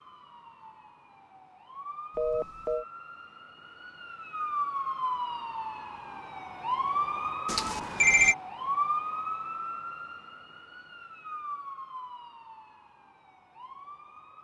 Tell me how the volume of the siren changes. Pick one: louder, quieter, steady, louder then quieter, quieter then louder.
louder then quieter.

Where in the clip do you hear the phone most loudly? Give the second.
8 s.